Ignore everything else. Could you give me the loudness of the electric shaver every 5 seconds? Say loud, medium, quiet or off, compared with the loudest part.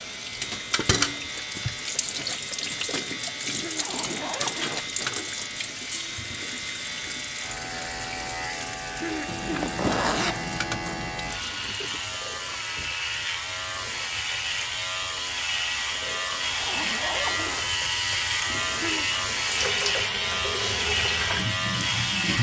medium, medium, medium, loud, loud.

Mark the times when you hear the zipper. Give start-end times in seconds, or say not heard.
3.8-5.0, 9.2-11.1, 16.6-17.7.